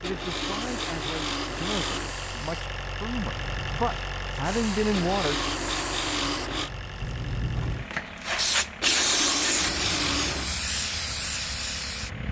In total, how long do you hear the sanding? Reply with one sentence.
The sanding can be heard for 6 seconds in total.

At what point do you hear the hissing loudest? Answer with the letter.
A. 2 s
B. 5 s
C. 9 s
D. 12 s
C.